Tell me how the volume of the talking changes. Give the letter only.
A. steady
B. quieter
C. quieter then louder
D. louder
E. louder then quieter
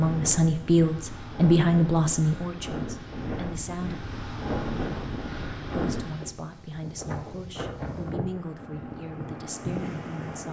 B.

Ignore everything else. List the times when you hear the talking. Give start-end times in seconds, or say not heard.
0.0-4.0, 5.7-10.4.